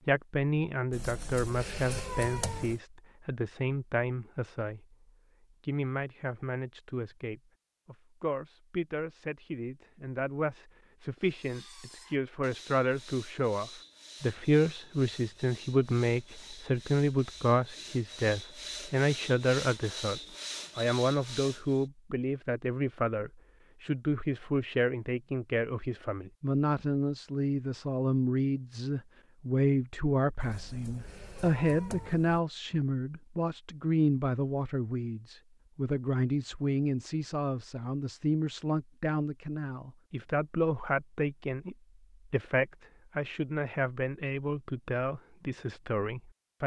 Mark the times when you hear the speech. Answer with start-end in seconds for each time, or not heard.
0.1-5.0, 5.6-46.6.